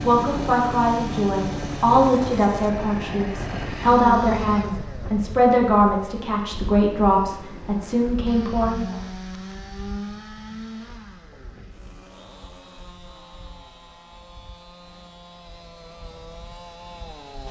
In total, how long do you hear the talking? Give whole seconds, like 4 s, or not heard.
9 s.